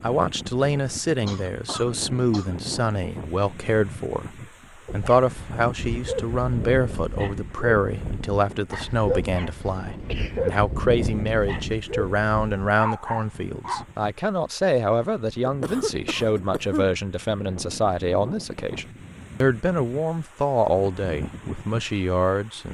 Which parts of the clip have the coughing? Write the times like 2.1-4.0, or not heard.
1.2-2.5, 9.9-10.6, 15.4-16.9.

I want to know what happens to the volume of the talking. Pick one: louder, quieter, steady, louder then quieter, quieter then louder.
steady.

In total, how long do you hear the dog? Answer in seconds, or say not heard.
9 s.